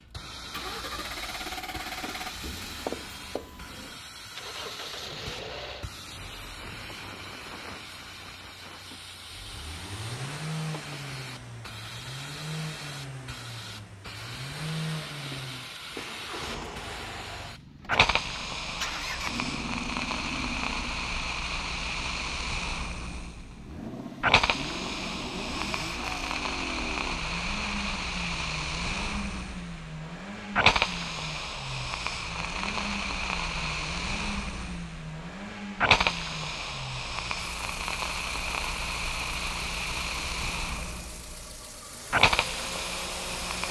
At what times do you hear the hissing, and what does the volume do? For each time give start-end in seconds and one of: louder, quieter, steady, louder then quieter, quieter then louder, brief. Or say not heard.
0.1-43.6 louder.